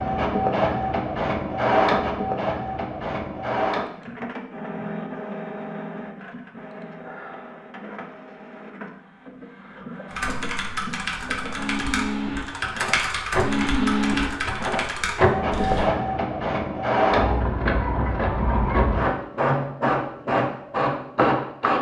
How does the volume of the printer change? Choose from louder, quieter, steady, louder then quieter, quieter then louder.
quieter then louder.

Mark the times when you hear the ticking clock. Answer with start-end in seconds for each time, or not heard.
not heard.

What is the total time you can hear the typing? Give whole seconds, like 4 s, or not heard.
6 s.